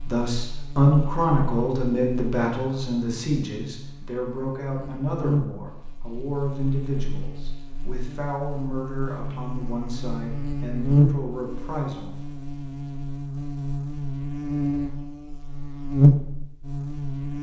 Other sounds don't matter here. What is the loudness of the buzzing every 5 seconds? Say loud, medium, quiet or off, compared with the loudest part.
quiet, medium, loud, loud.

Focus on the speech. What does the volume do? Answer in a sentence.
The loudness of the speech goes down.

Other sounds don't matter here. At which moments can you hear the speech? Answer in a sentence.
The speech can be heard from 0.0 to 12.2 s.